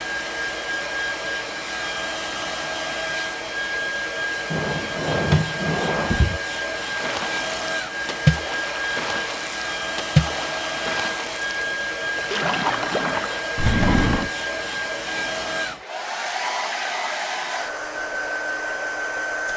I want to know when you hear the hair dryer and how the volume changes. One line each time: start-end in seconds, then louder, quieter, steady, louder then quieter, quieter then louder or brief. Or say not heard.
0.0-19.5 steady.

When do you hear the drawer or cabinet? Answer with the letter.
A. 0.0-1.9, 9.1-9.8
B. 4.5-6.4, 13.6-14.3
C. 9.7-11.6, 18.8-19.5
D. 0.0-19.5
B.